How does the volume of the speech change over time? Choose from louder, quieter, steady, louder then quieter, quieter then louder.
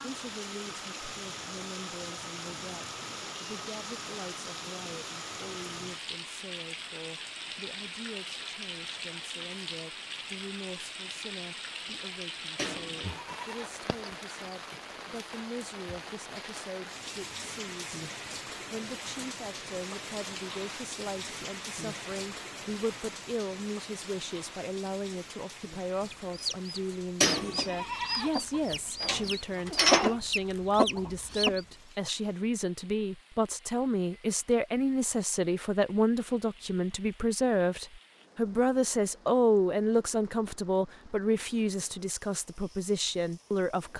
louder.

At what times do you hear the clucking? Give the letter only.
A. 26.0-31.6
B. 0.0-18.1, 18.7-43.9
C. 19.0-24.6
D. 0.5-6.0
A.